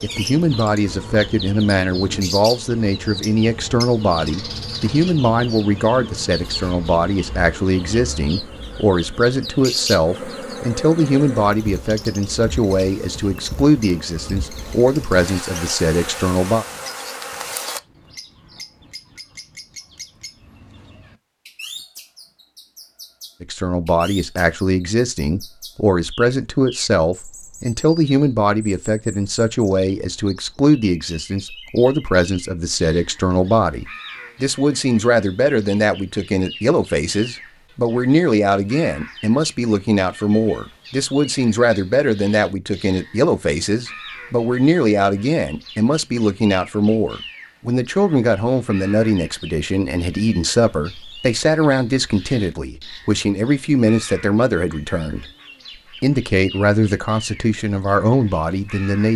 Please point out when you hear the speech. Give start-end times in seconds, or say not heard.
0.0-16.6, 23.4-55.2, 56.0-59.1.